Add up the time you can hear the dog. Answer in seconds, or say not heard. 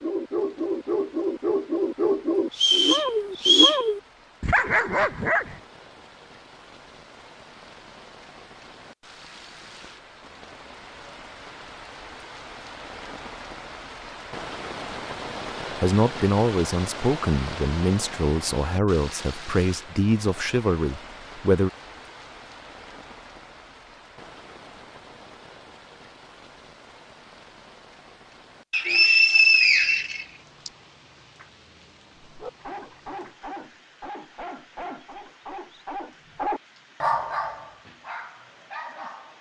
13 s.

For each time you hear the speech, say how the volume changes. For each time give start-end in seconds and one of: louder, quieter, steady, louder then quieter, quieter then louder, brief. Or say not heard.
15.8-21.7 steady.